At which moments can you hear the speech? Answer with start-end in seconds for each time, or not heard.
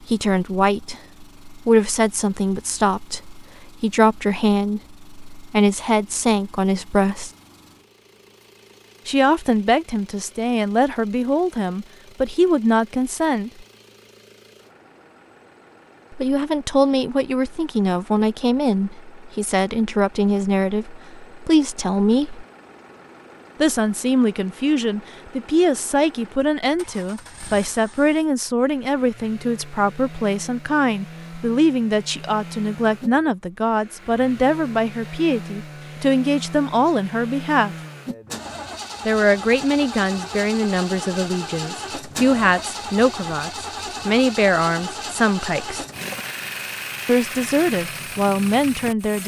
0.1-7.3, 9.1-13.7, 16.1-22.4, 23.6-37.8, 39.0-45.9, 47.0-49.2.